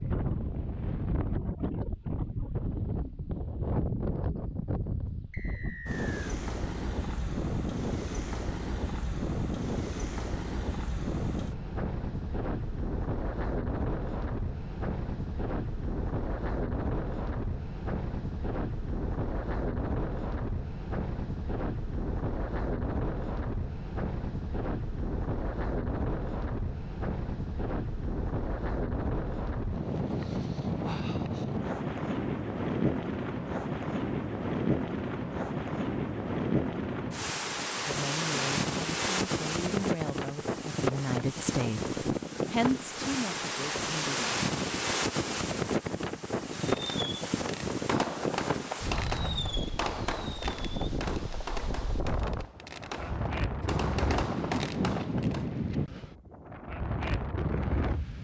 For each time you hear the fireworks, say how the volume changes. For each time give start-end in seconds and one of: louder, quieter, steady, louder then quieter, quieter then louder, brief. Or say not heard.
46.5-55.5 quieter then louder.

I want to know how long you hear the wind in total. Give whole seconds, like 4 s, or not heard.
58 s.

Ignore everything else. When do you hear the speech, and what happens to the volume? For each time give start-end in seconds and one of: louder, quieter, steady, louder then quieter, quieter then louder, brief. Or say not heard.
37.9-44.3 louder then quieter.